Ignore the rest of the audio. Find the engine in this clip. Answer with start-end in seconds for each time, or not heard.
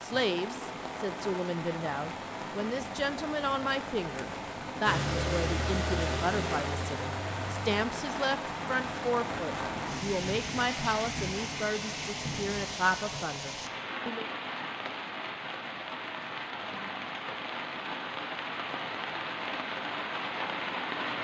4.8-7.9.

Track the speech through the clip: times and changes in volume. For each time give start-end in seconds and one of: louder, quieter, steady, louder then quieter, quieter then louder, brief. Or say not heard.
0.0-14.2 steady.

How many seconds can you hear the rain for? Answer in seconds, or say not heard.
21 s.